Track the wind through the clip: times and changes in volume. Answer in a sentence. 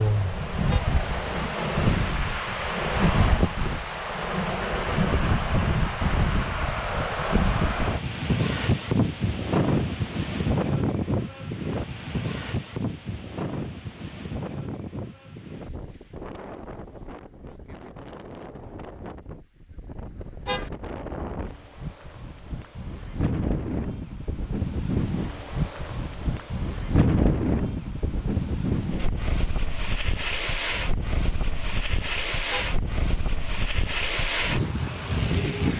You can hear the wind from 0.0 to 35.7 s, getting quieter then louder.